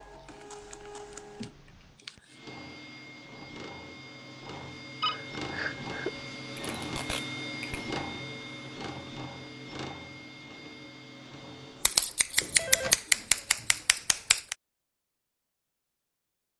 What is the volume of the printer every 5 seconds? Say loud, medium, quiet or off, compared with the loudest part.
medium, loud, medium, off.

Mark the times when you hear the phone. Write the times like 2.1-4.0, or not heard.
5.0-6.2, 12.4-13.0.